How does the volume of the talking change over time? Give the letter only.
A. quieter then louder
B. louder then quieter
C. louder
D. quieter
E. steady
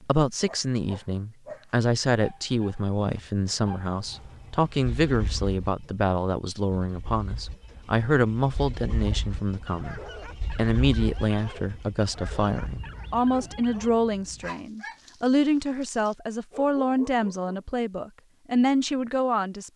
E.